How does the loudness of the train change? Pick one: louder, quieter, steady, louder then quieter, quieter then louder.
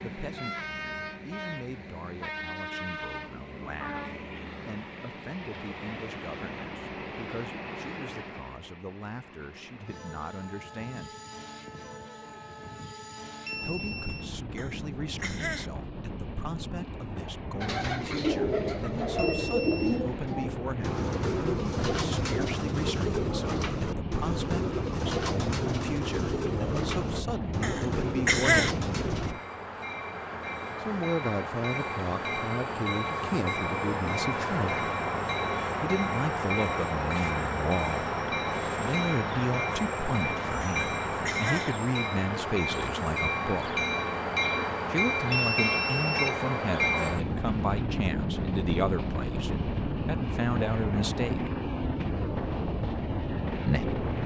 louder.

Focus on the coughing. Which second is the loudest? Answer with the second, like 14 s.
28 s.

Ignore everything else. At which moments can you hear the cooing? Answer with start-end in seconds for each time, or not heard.
17.6-29.4.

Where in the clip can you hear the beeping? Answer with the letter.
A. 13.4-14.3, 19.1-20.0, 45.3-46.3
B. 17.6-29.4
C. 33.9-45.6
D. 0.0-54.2
A.